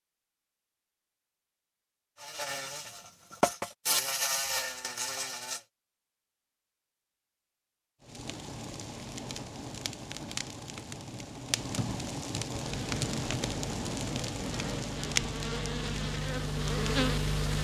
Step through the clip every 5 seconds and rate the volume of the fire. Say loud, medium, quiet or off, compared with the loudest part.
off, medium, loud, loud.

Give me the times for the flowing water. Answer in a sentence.
The flowing water can't be heard in this clip.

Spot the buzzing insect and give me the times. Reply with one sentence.
You can hear the buzzing insect from 2.1 to 5.7 s and from 12.6 to 17.5 s.